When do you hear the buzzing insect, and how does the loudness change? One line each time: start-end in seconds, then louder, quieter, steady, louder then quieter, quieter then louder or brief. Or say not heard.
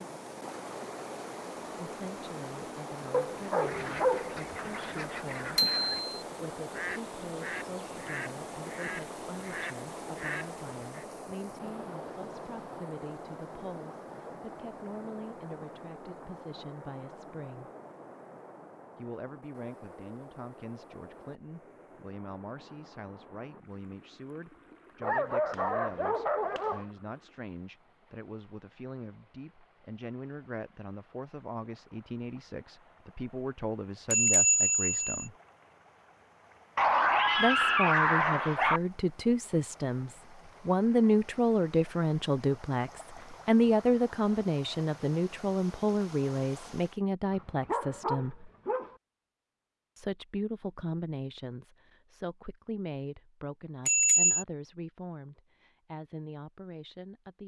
not heard.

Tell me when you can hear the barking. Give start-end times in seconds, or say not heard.
3.1-4.9, 25.0-26.9, 36.8-38.8, 47.3-49.0.